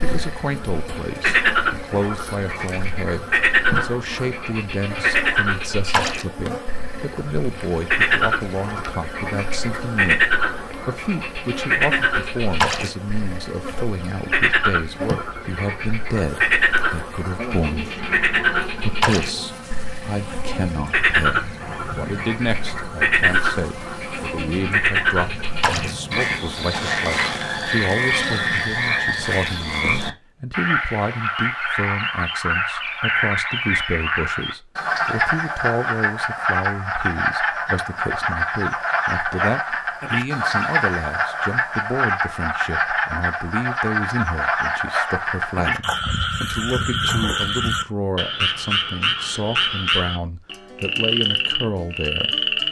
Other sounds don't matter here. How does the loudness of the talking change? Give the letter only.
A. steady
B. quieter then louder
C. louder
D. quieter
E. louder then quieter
A.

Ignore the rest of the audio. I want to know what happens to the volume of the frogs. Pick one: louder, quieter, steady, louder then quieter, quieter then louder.
steady.